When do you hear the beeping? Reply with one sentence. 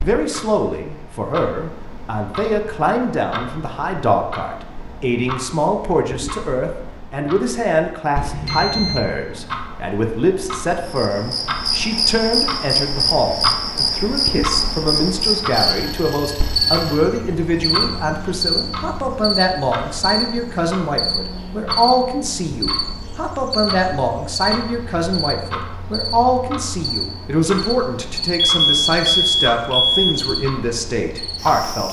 The beeping can be heard from 8.2 to 9.1 s, from 15.5 to 17.1 s and from 28.4 to 30.1 s.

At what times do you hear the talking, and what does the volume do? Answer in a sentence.
The talking can be heard from 0.0 to 31.8 s, at a steady volume.